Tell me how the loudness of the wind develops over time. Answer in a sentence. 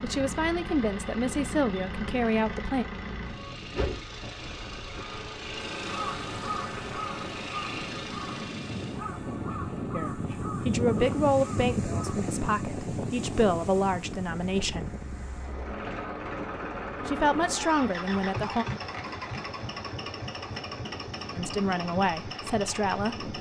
The loudness of the wind goes up, then down.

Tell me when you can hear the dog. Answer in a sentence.
You can't hear the dog here.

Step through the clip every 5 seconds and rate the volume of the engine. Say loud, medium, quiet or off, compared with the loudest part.
loud, loud, quiet, loud, loud.